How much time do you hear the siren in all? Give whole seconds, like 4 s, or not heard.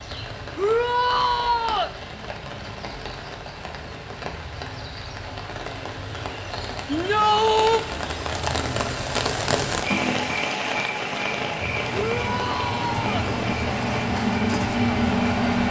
not heard.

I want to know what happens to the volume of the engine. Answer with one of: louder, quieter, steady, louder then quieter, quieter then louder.
louder.